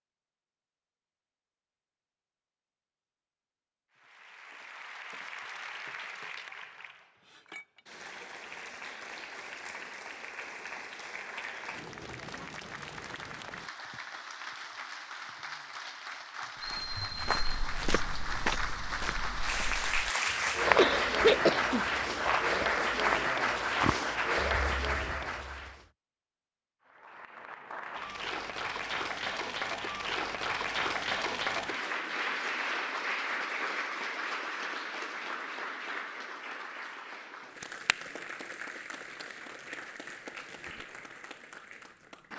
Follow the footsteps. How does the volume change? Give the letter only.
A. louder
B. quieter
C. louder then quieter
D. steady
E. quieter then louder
C.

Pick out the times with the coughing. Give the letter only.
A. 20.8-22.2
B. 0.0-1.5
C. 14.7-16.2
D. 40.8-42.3
A.